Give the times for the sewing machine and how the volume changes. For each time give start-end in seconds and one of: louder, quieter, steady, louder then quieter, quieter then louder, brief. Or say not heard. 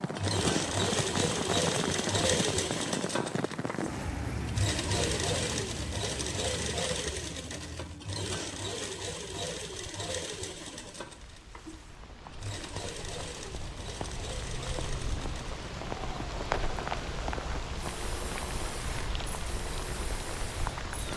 0.1-21.1 quieter.